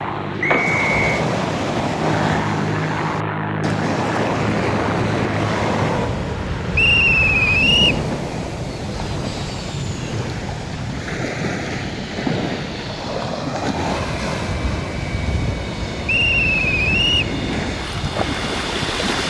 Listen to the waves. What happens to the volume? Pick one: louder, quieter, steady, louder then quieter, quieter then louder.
steady.